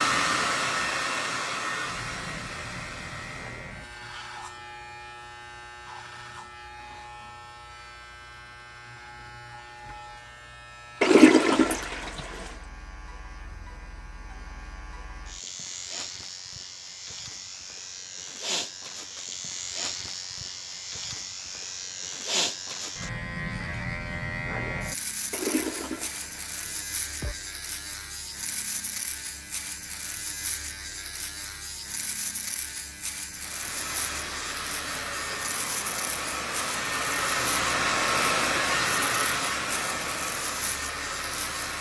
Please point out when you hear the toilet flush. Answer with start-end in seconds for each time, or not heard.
11.0-12.4, 25.3-27.4.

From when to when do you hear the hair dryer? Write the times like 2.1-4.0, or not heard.
0.0-3.9, 33.4-41.7.